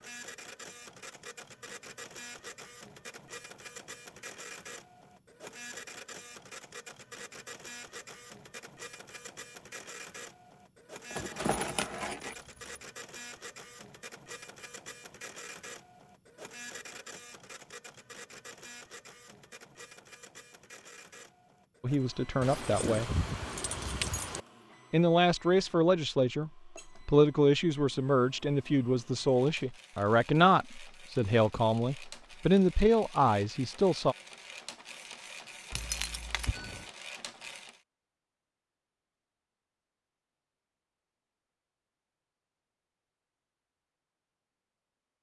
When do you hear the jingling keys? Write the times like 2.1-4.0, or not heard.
11.1-12.8, 22.4-24.4, 35.7-36.9.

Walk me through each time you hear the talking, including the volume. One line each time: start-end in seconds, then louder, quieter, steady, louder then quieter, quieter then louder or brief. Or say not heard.
21.8-23.1 brief
24.9-34.1 steady.